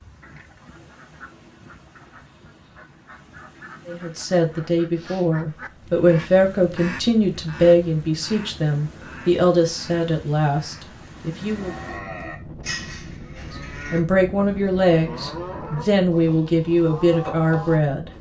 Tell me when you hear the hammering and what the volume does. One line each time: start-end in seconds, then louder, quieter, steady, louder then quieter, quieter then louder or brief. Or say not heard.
not heard.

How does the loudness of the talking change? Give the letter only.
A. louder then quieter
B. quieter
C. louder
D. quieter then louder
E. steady
E.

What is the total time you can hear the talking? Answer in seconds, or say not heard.
12 s.